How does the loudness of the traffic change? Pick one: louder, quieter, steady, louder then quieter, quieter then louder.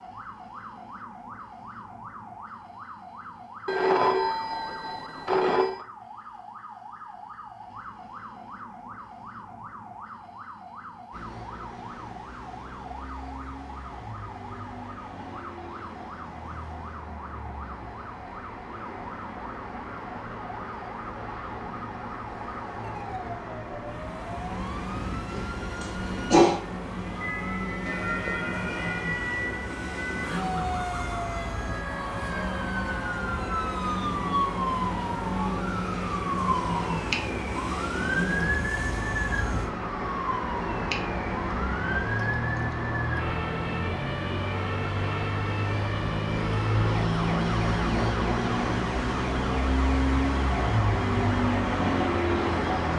louder.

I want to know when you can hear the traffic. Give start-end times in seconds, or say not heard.
11.1-52.9.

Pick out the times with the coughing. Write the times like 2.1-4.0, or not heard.
25.3-26.6.